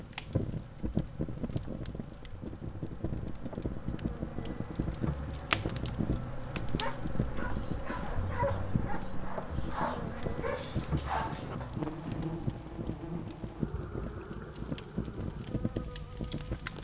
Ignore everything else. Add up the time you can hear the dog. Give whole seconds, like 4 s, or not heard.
5 s.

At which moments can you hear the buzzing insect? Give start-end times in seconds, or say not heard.
0.0-16.7.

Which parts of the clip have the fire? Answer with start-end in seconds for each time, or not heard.
0.0-16.7.